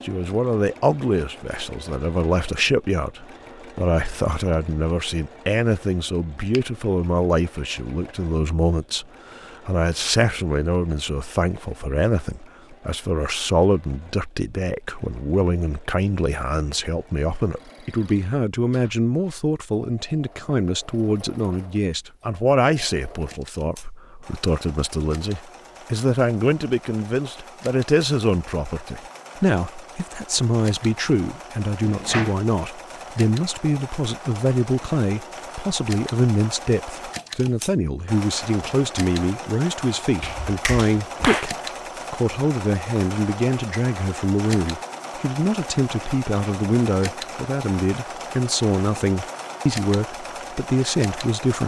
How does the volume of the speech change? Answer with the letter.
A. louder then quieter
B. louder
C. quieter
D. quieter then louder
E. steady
E.